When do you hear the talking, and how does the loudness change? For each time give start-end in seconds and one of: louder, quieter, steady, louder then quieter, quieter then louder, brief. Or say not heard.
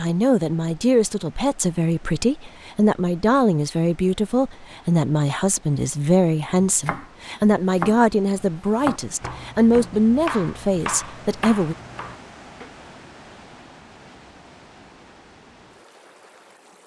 0.0-11.8 steady.